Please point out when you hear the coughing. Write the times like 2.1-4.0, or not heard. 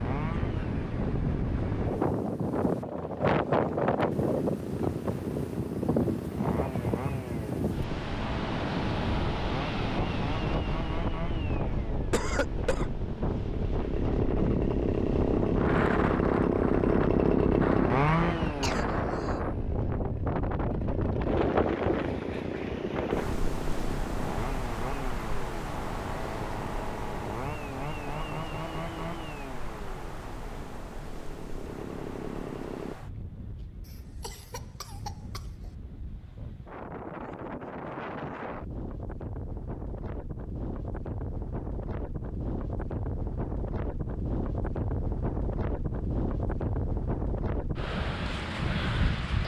12.1-12.9, 18.4-19.4, 33.9-35.7.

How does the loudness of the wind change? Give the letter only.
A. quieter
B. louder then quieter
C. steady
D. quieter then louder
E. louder
D.